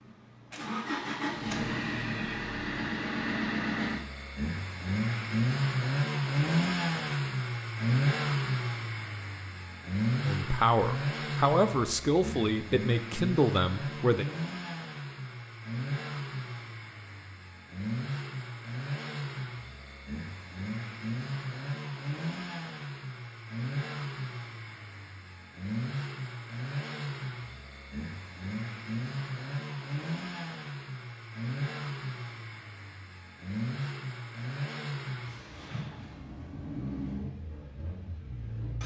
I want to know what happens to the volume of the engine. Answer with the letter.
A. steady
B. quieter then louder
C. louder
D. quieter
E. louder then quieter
D.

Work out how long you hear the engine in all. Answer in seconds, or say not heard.
39 s.